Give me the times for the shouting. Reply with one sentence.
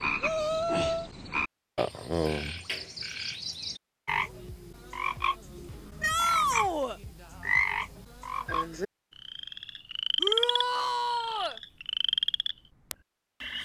You can hear the shouting from 0.2 to 1.1 s, from 6.0 to 7.0 s and from 10.2 to 11.6 s.